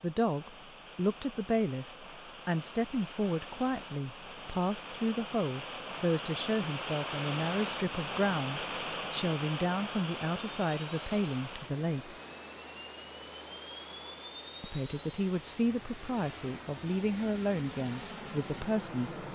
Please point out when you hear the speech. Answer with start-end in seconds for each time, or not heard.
0.0-12.2, 14.6-19.1.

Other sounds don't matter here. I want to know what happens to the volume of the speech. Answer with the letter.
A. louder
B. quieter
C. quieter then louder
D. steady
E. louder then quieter
D.